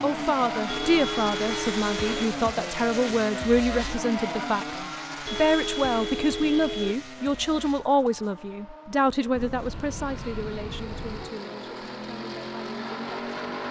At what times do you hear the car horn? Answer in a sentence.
You can hear the car horn from 0.7 to 2.3 s, from 5.2 to 7.0 s and from 9.3 to 11.3 s.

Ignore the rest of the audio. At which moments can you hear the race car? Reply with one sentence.
The race car can be heard from 0.0 to 13.6 s.